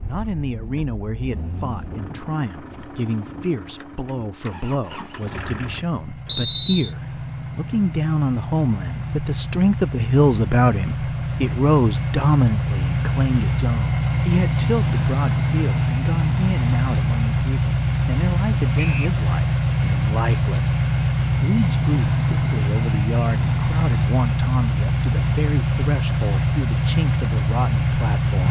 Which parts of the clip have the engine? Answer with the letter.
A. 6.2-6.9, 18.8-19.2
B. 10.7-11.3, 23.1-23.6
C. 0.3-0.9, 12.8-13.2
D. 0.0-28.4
D.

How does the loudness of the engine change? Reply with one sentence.
The loudness of the engine goes up.